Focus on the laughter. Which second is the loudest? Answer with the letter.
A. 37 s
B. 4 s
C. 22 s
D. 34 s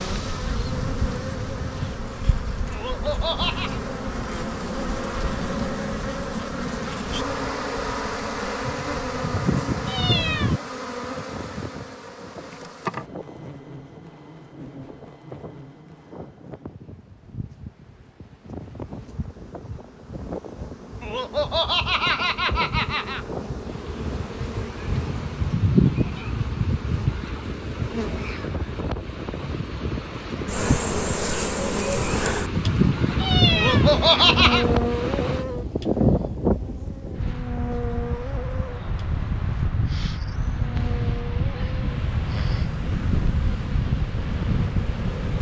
D.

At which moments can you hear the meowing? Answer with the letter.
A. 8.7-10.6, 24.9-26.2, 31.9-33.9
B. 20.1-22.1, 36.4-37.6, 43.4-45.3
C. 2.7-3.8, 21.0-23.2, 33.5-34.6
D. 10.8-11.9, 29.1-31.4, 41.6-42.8
A.